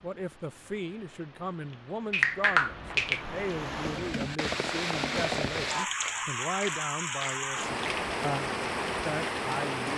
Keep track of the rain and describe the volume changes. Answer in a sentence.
The volume of the rain goes up.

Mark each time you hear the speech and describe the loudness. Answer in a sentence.
You can hear the speech from 0.0 to 9.9 s, at a steady volume.